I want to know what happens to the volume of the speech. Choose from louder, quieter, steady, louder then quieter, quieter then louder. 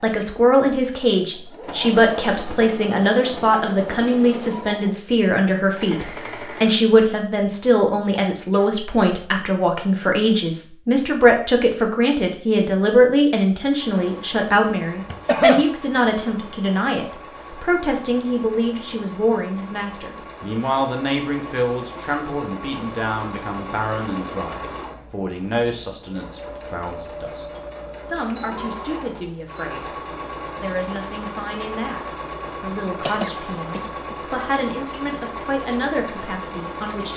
quieter.